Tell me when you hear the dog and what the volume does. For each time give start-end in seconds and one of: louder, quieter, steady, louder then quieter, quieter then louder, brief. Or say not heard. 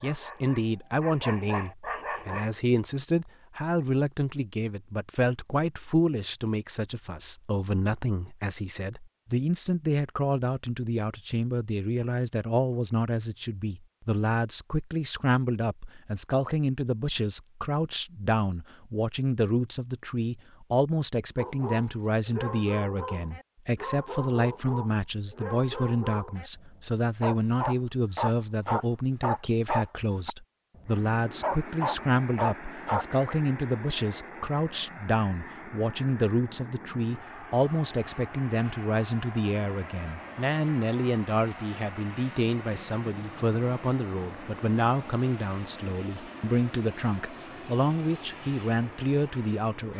0.0-2.5 brief
21.4-33.0 louder.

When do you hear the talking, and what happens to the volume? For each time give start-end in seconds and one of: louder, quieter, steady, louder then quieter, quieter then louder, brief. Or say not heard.
0.0-49.9 steady.